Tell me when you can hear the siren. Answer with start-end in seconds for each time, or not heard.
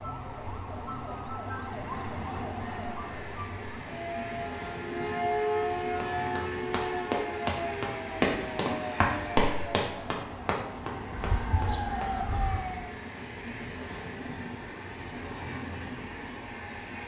0.0-12.9.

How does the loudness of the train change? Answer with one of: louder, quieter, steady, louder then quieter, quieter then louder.
steady.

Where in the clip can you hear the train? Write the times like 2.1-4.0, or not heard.
0.0-17.0.